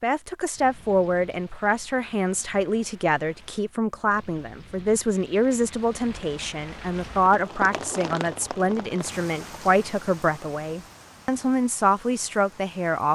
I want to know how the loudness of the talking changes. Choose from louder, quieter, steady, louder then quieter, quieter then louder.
steady.